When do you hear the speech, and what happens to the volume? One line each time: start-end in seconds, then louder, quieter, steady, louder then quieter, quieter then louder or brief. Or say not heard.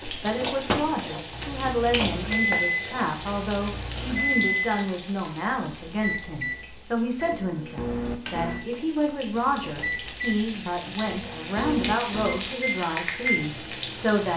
0.1-14.3 steady.